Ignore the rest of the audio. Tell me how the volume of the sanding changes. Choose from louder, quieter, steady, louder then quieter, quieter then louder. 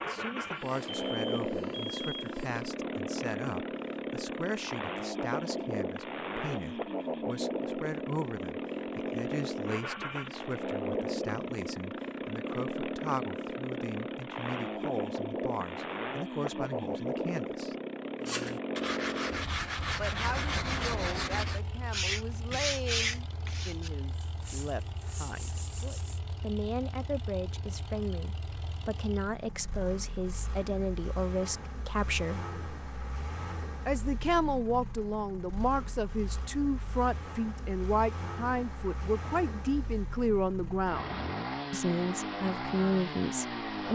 quieter.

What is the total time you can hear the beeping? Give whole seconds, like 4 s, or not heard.
2 s.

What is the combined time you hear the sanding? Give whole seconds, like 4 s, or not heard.
8 s.